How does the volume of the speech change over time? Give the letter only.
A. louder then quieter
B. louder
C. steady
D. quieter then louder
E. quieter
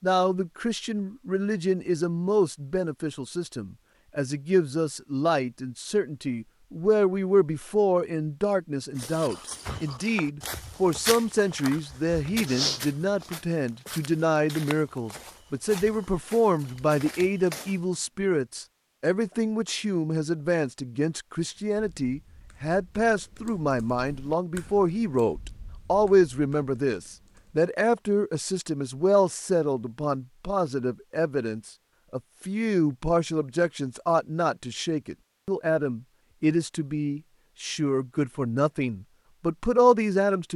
C.